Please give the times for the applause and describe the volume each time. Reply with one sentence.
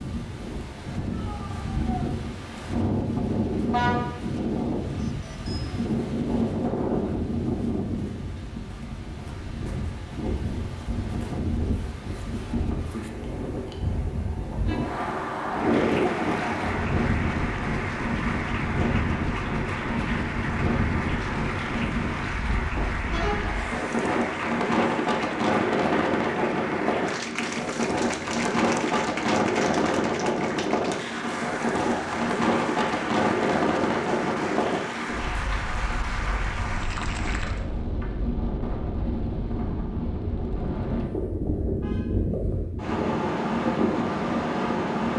You can hear the applause from 15.5 to 37.6 s, at a steady volume.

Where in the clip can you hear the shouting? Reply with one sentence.
You can hear the shouting from 1.1 to 2.1 s.